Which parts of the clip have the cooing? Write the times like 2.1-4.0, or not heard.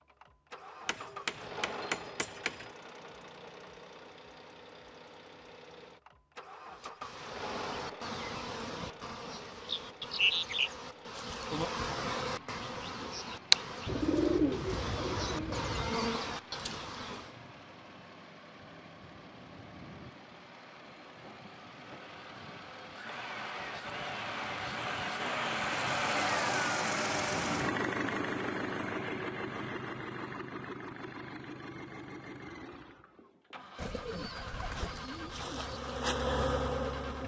13.8-16.0, 33.8-35.8.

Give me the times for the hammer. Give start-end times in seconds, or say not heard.
0.8-2.7.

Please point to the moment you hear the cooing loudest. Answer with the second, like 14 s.
14 s.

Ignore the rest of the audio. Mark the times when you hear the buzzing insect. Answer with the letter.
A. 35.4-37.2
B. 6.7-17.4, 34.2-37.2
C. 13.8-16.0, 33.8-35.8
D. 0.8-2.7
B.